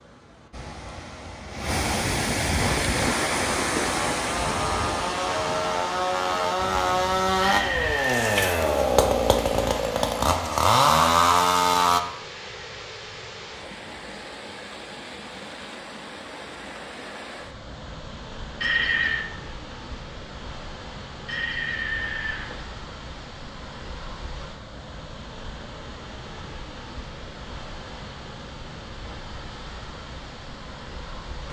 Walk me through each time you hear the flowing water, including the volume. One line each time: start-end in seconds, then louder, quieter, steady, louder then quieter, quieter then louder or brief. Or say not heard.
0.0-31.4 quieter.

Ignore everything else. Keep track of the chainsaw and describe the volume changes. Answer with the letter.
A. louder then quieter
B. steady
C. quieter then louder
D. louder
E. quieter
D.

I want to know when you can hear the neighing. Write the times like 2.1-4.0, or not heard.
7.4-8.6, 18.6-19.2, 21.2-22.6.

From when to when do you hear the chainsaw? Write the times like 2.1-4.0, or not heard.
2.5-12.0.